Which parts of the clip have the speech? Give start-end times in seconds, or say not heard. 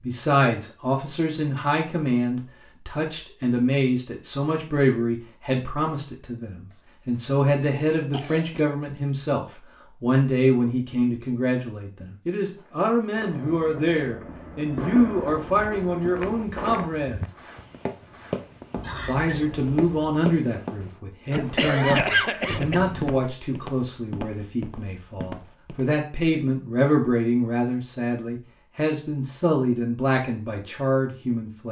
0.0-17.2, 19.1-31.6.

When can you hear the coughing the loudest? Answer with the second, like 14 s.
22 s.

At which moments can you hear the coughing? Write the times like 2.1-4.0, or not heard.
6.7-8.7, 18.8-19.5, 21.3-22.8.